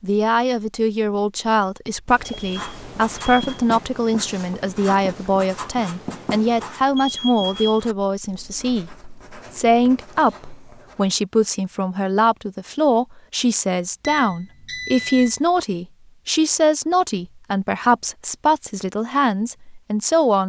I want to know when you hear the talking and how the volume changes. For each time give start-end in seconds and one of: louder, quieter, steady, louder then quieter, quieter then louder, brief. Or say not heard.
0.0-20.4 steady.